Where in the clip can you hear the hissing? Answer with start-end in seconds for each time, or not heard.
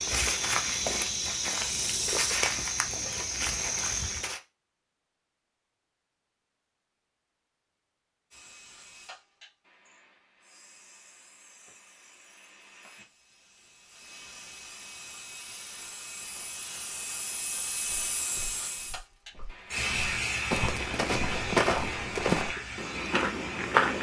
8.3-23.9.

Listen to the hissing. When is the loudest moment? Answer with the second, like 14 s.
20 s.